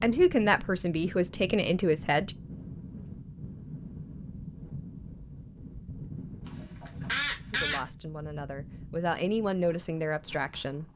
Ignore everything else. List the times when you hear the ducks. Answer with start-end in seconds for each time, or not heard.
6.5-7.8.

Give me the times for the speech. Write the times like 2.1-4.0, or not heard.
0.0-2.4, 7.5-10.8.